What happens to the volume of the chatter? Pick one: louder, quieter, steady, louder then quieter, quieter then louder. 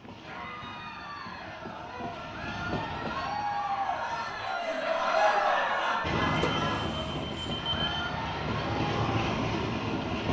louder then quieter.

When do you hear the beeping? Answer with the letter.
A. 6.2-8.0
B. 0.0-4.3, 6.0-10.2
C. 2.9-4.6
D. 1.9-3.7
A.